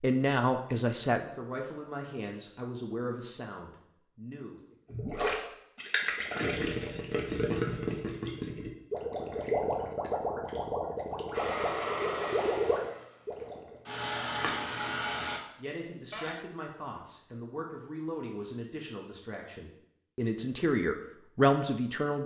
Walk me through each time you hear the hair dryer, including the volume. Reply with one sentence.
The hair dryer can be heard from 11.3 to 15.4 s, getting quieter then louder.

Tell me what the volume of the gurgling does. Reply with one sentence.
The volume of the gurgling stays about the same.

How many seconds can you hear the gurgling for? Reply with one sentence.
The gurgling can be heard for 9 seconds in total.